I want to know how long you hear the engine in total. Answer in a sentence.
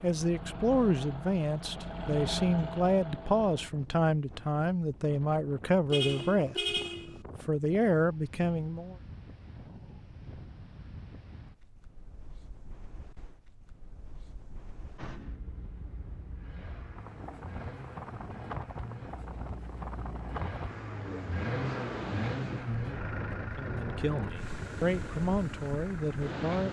The engine can be heard for 15 seconds in total.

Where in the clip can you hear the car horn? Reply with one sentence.
You can hear the car horn from 5.9 to 7.2 s.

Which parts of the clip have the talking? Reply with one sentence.
The talking can be heard from 0.0 to 6.8 s, from 7.4 to 8.9 s and from 23.6 to 26.6 s.